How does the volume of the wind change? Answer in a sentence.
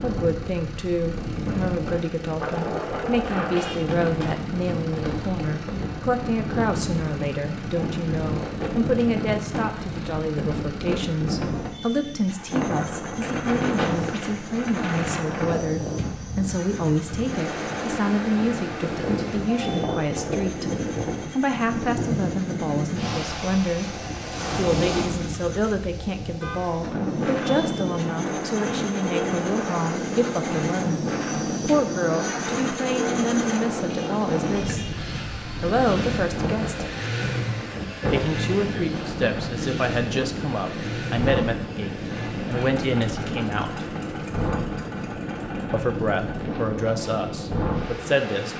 The volume of the wind stays about the same.